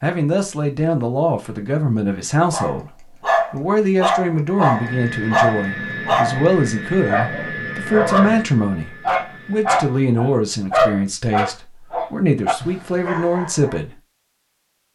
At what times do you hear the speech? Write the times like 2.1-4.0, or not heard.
0.0-13.9.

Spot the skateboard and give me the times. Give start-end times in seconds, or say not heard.
not heard.